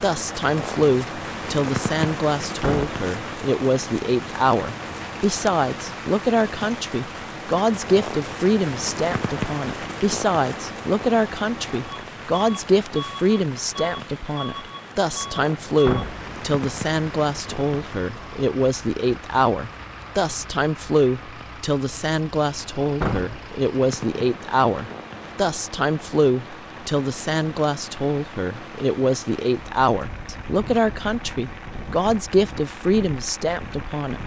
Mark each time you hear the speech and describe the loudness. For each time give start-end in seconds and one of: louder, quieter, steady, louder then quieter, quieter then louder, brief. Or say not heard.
0.0-34.2 steady.